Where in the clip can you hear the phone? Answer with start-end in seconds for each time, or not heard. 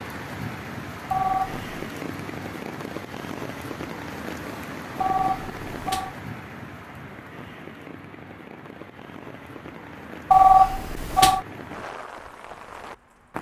1.1-1.6, 5.0-6.2, 10.3-11.4.